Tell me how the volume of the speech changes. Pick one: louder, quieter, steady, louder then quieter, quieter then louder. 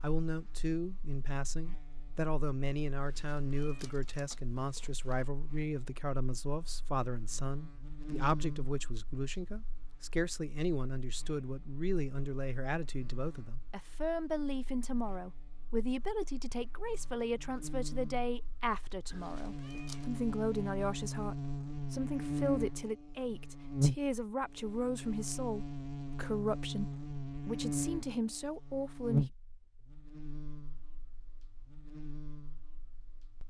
steady.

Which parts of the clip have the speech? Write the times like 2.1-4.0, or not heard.
0.0-29.2.